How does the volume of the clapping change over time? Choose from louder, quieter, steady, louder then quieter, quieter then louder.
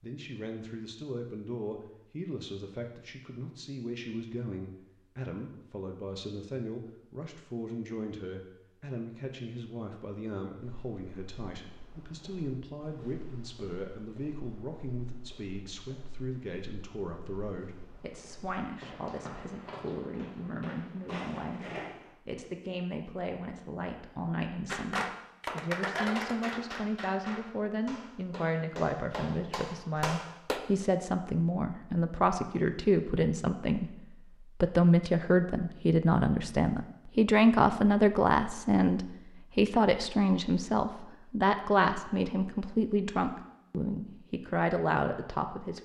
quieter then louder.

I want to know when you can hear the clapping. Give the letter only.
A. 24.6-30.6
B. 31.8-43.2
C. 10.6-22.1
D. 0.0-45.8
A.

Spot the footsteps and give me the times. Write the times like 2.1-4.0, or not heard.
10.6-22.1.